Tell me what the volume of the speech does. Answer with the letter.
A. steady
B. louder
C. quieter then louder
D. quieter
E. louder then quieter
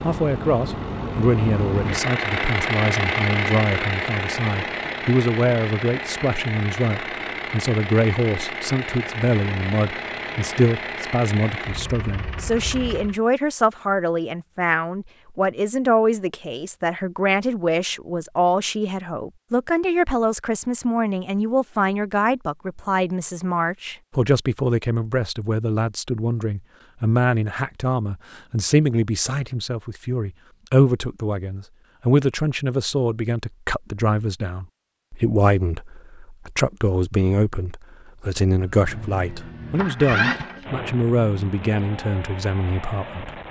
A.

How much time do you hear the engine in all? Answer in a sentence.
The engine can be heard for 18 seconds in total.